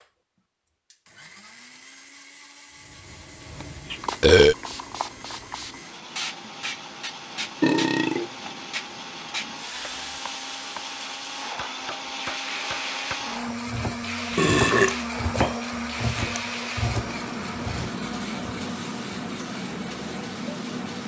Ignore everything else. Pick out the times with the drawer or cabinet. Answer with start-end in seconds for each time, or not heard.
not heard.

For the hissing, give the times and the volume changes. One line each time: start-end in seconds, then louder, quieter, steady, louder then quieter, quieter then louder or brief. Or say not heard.
2.9-21.0 steady.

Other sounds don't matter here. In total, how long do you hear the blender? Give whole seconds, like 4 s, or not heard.
21 s.